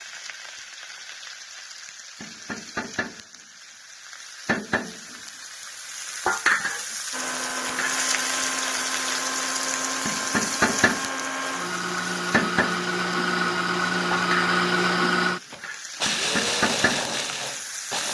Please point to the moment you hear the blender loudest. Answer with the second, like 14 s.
15 s.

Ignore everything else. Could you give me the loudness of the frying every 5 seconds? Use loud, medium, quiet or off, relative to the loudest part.
medium, loud, loud, loud.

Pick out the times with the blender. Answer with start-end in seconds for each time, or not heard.
7.1-18.0.